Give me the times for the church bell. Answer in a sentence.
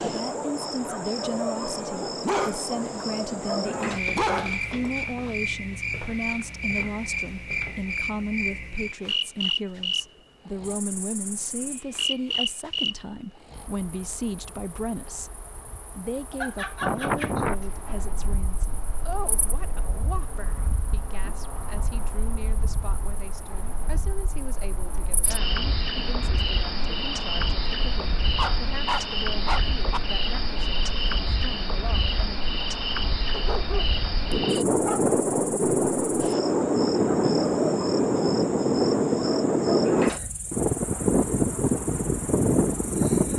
You can't hear the church bell here.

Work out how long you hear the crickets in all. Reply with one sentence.
You can hear the crickets for 43 seconds altogether.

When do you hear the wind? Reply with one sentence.
You can hear the wind from 16.8 to 43.3 s.